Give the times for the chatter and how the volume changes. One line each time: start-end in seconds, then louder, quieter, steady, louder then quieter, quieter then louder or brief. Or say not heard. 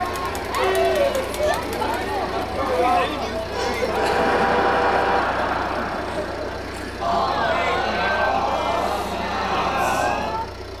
0.0-10.7 steady.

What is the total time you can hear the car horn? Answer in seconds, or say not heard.
2 s.